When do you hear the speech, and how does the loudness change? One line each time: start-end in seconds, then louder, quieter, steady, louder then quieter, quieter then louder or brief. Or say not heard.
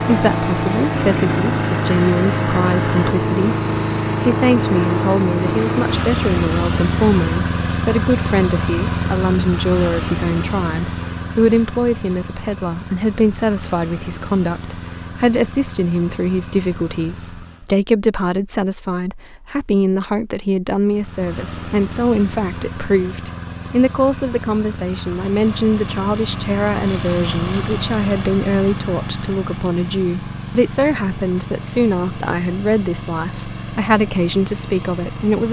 0.0-35.4 steady.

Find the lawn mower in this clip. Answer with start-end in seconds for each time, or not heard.
0.0-17.7, 20.8-35.4.